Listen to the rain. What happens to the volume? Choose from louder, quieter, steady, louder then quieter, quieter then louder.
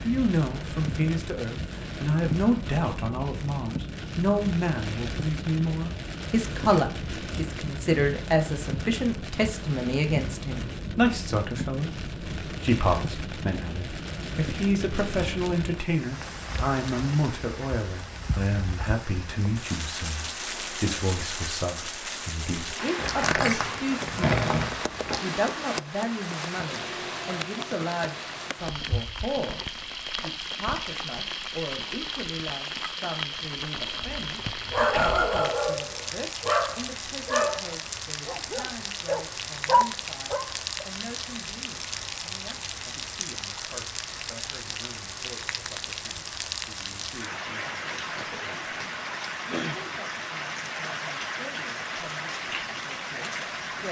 steady.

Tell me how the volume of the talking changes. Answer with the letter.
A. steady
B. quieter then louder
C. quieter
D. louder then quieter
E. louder
C.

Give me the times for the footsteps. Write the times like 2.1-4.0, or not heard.
not heard.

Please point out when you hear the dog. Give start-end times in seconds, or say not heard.
34.7-40.9.